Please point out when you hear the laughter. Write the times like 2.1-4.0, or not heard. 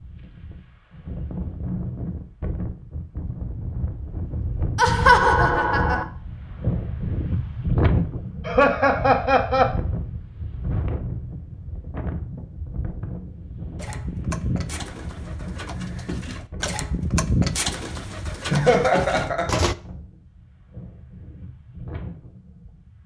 4.8-6.0, 8.4-9.7, 18.5-19.7.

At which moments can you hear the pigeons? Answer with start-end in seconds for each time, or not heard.
13.8-19.8.